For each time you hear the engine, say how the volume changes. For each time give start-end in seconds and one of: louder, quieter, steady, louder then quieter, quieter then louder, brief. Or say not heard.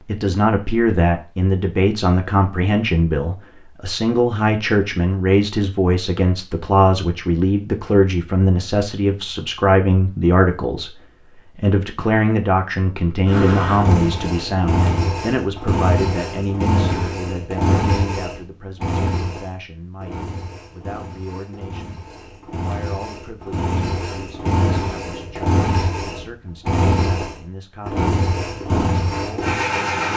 13.2-30.1 quieter then louder.